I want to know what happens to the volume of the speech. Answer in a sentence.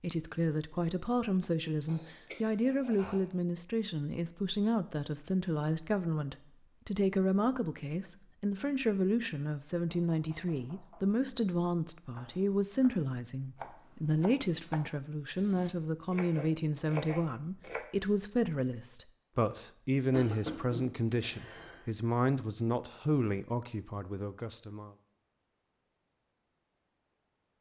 The volume of the speech stays about the same.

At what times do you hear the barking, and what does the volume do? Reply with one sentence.
The barking can't be heard in this clip.